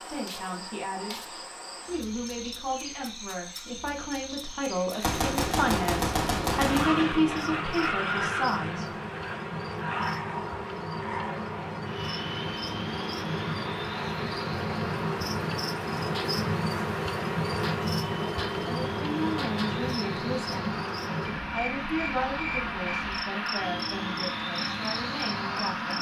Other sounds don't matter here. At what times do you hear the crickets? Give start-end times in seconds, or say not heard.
0.0-25.9.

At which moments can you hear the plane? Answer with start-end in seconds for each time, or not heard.
6.7-25.9.